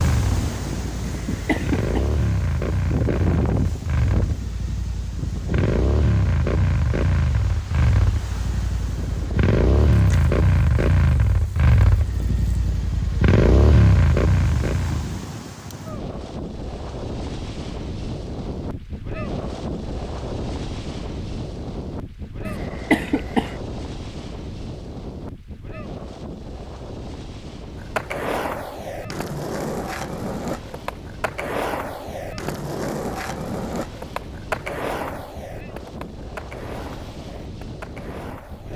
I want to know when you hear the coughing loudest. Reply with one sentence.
The loudest moment of the coughing is at 23 seconds.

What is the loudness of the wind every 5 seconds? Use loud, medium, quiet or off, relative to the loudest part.
loud, medium, medium, loud, loud, medium, medium, medium.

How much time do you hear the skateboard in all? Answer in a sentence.
You can hear the skateboard for 11 seconds altogether.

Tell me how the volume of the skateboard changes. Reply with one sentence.
The loudness of the skateboard goes down.